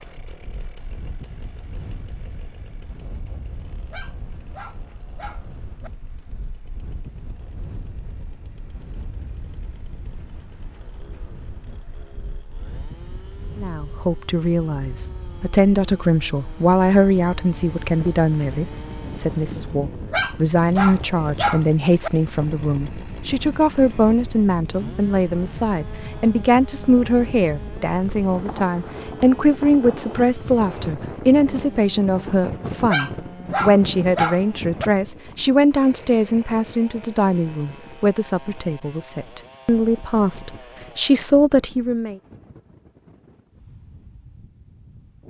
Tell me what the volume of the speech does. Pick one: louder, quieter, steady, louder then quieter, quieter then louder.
steady.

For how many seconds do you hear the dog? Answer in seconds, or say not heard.
6 s.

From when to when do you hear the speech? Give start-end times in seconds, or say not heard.
13.6-42.1.